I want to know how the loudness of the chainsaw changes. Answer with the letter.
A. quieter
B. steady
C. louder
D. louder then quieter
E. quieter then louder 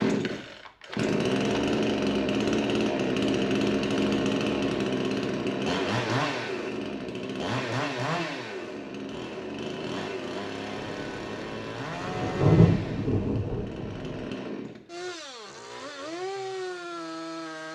A.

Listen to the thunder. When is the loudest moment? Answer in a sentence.
The volume of the thunder peaks at 13 seconds.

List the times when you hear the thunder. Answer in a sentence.
The thunder can be heard from 10.8 to 14.3 s.